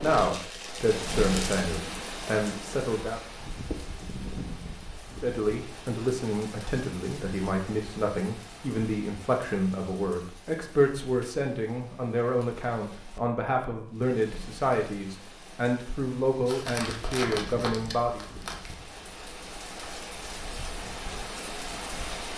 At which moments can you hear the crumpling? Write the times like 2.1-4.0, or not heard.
0.0-1.6, 16.4-18.8.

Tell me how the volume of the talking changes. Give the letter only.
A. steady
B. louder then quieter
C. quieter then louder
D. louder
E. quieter
A.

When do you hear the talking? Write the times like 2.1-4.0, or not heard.
0.0-3.2, 5.2-18.2.